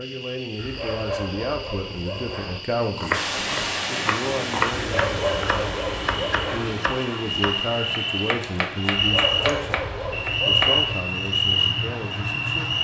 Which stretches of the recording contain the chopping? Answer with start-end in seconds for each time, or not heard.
2.8-10.8.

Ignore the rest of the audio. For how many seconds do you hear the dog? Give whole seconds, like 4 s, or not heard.
6 s.